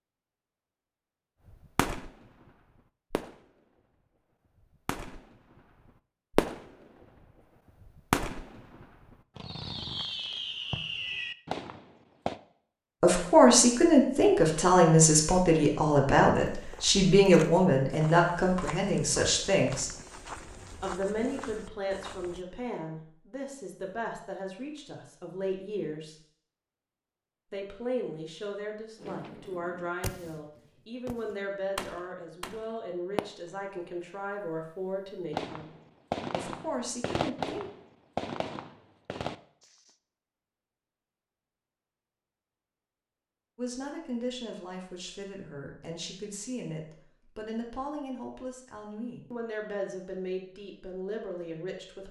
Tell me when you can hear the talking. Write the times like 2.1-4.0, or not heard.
13.0-19.9, 20.8-26.1, 27.5-35.7, 36.3-37.6, 43.5-52.0.